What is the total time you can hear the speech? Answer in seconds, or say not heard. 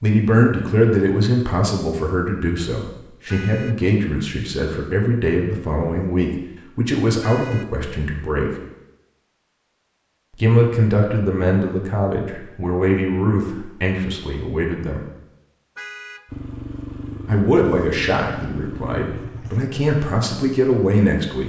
17 s.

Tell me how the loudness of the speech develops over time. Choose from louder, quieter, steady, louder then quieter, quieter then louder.
steady.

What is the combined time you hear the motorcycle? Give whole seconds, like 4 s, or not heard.
3 s.